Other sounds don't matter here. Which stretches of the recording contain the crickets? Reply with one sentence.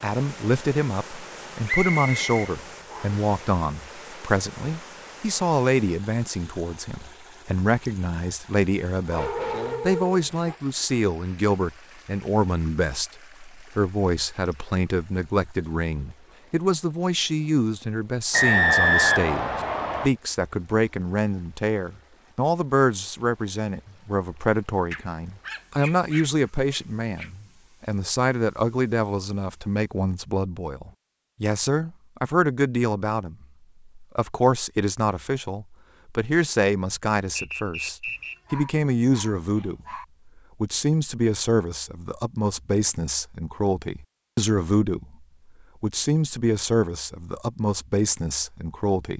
The crickets can't be heard in this clip.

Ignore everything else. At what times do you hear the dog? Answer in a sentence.
You can hear the dog from 8.9 to 10.6 s, from 24.9 to 27.3 s and from 38.1 to 40.0 s.